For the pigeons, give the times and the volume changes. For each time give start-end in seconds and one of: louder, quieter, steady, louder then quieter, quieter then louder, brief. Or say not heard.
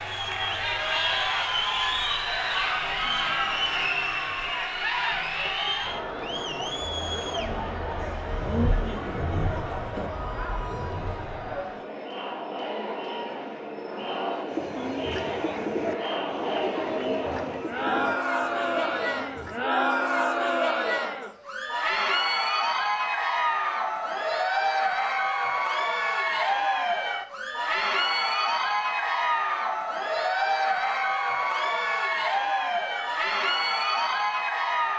14.4-19.6 quieter.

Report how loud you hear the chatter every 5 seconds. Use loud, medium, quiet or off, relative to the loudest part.
loud, medium, medium, loud, loud, loud, loud.